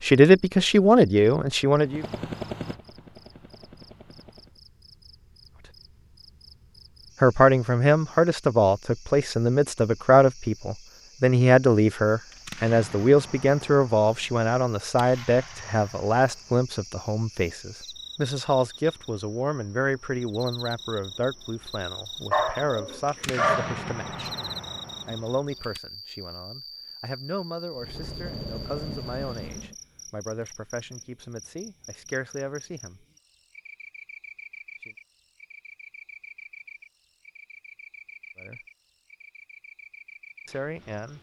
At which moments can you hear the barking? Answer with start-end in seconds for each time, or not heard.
22.3-23.8.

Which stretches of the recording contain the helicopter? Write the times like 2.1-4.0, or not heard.
1.9-4.6, 27.8-29.8.